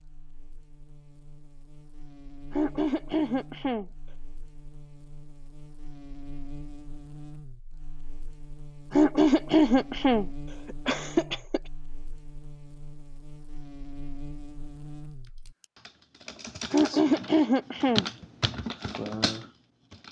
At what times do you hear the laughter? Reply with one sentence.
You can hear the laughter from 2.5 to 3.9 s, from 8.9 to 11.6 s and from 16.7 to 18.1 s.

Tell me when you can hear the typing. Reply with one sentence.
You can hear the typing from 15.2 to 20.0 s.